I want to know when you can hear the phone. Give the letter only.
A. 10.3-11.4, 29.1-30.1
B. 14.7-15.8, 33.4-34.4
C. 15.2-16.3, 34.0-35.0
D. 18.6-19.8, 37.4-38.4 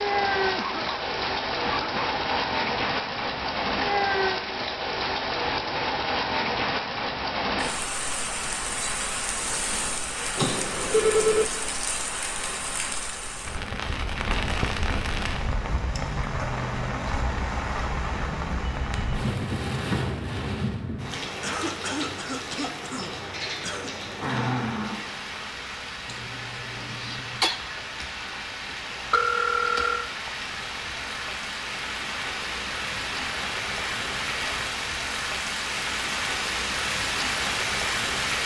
A.